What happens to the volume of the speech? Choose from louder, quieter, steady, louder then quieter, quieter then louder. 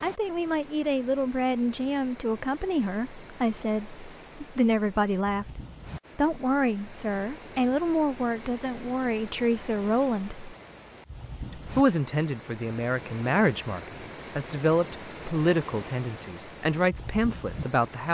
steady.